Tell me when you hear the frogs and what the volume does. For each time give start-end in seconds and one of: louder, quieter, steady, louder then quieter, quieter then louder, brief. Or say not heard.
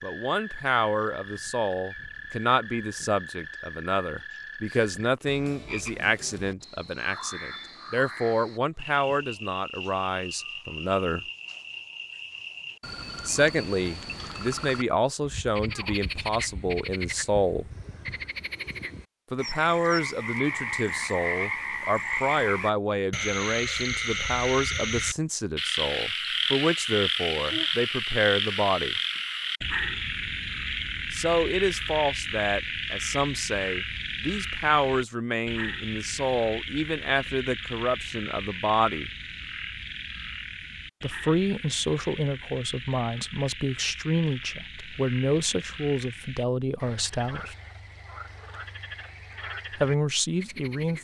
0.0-50.9 louder then quieter.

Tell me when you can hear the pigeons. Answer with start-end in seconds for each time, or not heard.
not heard.